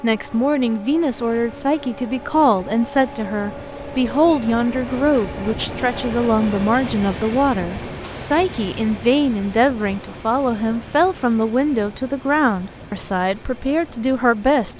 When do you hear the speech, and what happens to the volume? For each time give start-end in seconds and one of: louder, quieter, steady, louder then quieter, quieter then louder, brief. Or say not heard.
0.0-14.7 steady.